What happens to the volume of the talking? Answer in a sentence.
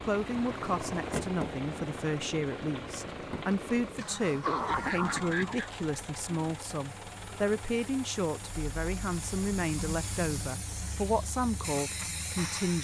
The loudness of the talking stays about the same.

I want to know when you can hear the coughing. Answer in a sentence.
The coughing can be heard from 4.0 to 5.7 s.